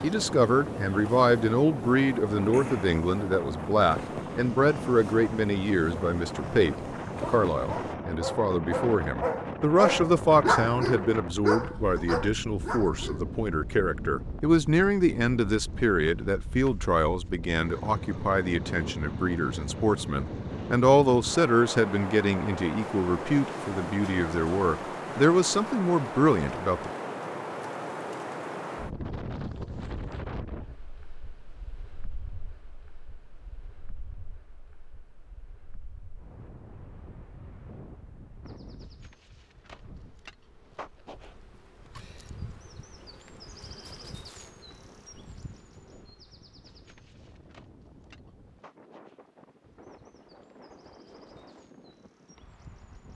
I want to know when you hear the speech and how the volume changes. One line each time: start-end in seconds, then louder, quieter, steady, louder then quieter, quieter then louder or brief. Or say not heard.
0.0-26.9 steady.